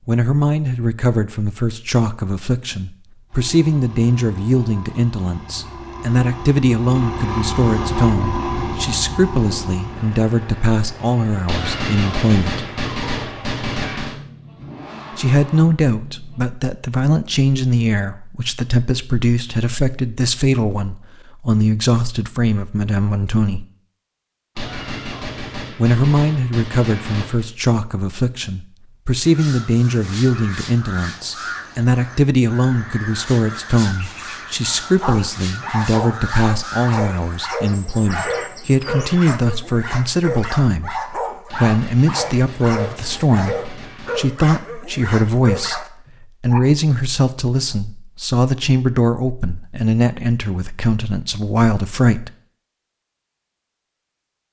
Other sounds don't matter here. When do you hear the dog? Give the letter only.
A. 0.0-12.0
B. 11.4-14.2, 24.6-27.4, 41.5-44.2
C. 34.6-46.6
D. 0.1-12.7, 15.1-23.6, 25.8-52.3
C.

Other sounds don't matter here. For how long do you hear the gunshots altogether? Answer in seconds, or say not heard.
8 s.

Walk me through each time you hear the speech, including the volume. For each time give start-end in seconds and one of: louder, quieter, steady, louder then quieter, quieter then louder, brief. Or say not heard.
0.1-12.7 steady
15.1-23.6 steady
25.8-52.3 steady.